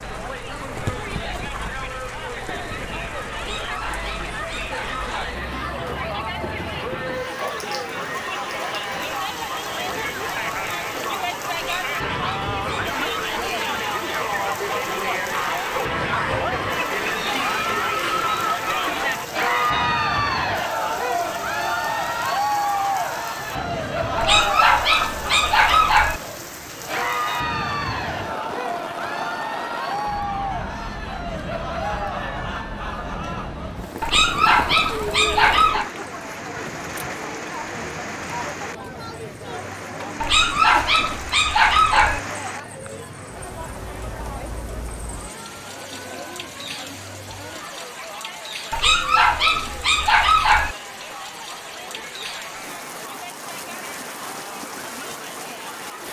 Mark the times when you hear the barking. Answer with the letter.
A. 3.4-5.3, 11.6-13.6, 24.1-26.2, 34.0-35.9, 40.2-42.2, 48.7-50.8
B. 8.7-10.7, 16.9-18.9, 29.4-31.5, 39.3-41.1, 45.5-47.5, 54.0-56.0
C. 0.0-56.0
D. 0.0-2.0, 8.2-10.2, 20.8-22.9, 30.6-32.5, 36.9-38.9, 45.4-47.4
A.